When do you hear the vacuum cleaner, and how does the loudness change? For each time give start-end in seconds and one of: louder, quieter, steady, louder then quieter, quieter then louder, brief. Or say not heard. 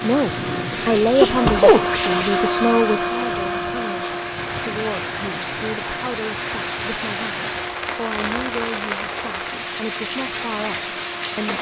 0.0-11.5 quieter.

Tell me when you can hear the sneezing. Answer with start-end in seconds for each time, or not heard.
0.7-1.9.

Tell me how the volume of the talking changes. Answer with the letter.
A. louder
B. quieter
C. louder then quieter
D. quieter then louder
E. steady
B.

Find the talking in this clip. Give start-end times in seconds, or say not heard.
0.0-11.5.